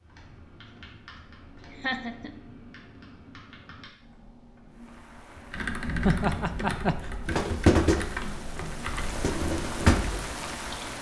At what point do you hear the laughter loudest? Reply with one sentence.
The loudest moment of the laughter is at 6 seconds.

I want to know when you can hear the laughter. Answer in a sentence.
You can hear the laughter from 1.7 to 2.4 s and from 6.0 to 7.0 s.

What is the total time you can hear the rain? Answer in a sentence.
The rain can be heard for 6 seconds in total.